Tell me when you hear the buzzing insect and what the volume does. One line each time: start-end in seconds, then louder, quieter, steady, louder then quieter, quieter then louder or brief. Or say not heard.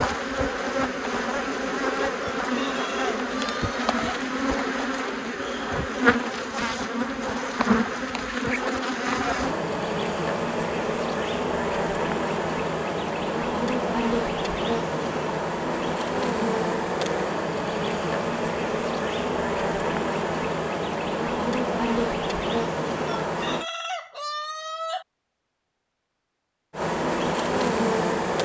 0.0-23.6 steady
26.7-28.4 brief.